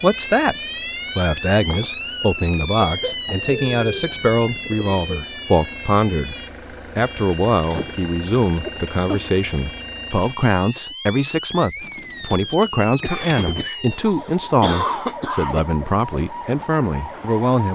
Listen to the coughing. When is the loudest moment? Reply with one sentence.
The loudest moment of the coughing is at 15 seconds.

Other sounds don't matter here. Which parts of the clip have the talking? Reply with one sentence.
The talking can be heard from 0.0 to 0.6 s, from 1.1 to 6.3 s and from 7.0 to 17.7 s.